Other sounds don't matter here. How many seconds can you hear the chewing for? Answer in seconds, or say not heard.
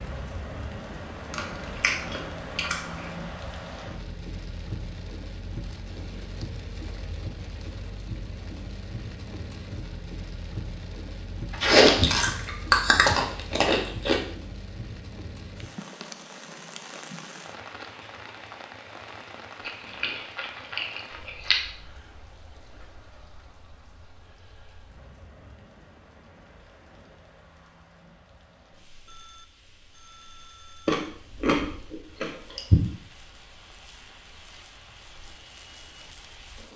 8 s.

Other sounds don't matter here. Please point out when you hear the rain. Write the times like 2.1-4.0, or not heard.
0.0-36.7.